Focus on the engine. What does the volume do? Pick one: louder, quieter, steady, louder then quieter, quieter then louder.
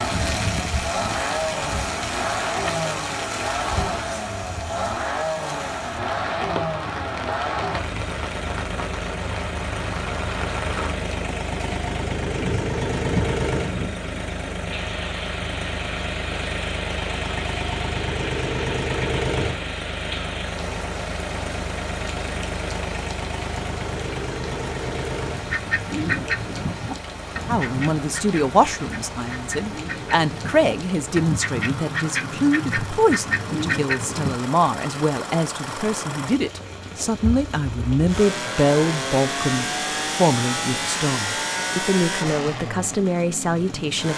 quieter then louder.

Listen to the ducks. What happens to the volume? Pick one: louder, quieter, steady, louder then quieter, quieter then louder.
quieter then louder.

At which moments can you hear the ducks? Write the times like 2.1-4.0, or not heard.
25.2-34.4.